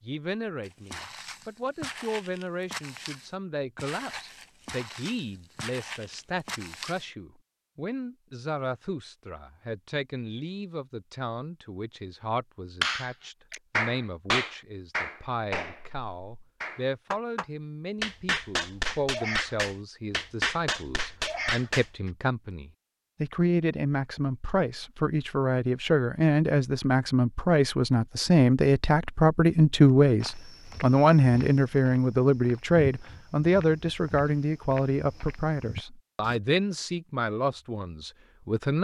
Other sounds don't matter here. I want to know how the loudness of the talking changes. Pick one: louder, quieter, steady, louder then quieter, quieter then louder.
louder.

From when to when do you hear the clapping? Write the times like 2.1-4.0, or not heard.
12.8-21.9.